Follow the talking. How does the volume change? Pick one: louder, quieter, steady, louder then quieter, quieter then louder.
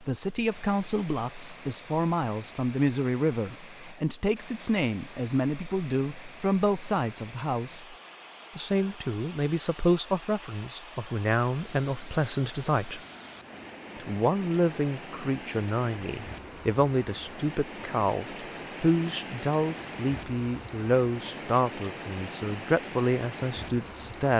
steady.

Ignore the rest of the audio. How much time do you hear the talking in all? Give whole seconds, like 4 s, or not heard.
23 s.